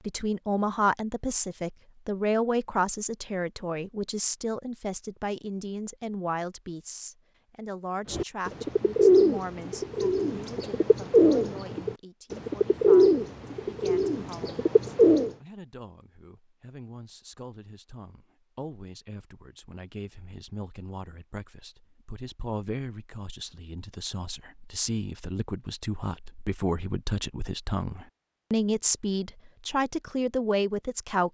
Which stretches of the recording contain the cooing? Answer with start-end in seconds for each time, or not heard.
8.1-15.3.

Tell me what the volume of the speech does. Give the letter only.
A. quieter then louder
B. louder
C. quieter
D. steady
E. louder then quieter
A.